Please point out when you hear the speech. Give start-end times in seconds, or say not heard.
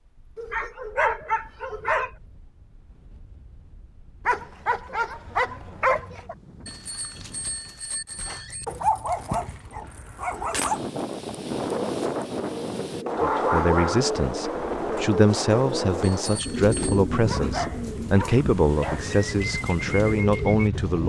13.2-21.0.